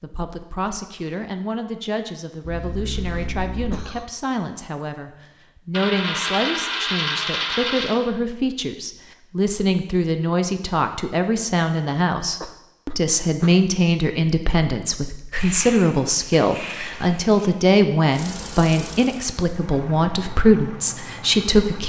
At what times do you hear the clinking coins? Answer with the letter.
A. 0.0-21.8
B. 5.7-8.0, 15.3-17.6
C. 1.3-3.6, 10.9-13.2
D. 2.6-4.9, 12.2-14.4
B.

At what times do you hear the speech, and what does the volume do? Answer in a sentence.
You can hear the speech from 0.0 to 21.8 s, getting louder.